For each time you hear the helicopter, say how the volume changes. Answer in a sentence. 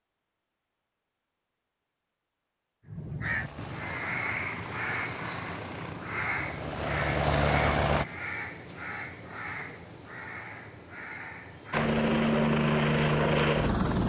You can hear the helicopter from 3.2 to 8.1 s, getting louder; and briefly from 11.7 to 14.0 s.